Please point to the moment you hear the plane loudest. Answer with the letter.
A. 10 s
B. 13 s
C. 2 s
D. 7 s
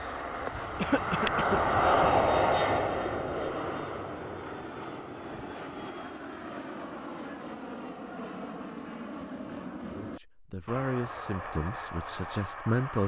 C.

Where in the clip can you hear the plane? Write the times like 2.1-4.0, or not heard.
0.0-13.0.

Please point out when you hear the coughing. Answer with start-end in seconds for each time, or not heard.
0.8-1.6.